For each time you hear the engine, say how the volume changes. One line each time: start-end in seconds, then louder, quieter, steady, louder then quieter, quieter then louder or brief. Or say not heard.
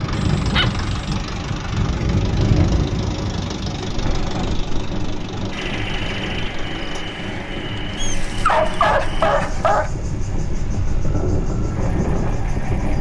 0.0-12.9 quieter.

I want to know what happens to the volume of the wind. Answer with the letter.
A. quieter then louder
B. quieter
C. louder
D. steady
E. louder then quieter
A.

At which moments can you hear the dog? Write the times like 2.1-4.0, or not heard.
0.3-0.9, 8.0-9.9.